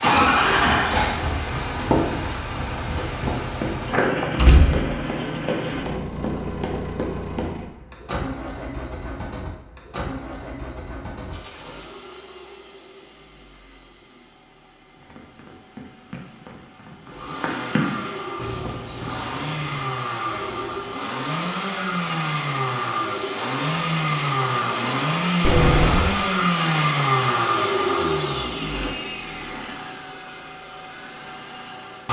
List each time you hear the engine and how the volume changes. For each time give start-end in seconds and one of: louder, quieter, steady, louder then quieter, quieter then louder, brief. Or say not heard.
0.0-32.0 quieter then louder.